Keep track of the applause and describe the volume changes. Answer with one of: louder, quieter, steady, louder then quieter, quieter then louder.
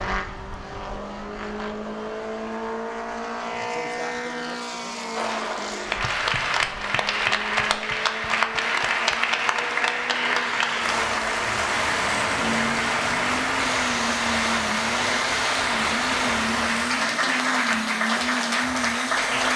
steady.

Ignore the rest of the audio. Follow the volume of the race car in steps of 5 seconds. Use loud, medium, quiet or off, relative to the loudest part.
loud, medium, loud, loud.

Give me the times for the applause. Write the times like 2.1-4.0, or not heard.
5.2-19.5.